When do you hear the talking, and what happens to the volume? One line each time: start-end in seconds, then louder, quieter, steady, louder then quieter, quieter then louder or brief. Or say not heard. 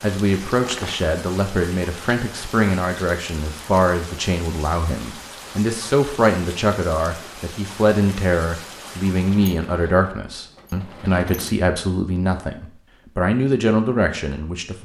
0.0-14.8 steady.